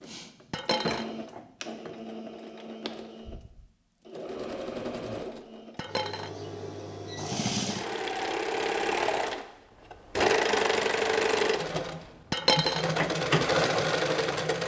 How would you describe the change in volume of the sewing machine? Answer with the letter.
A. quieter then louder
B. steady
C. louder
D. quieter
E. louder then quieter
C.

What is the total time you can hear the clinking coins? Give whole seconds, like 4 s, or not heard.
2 s.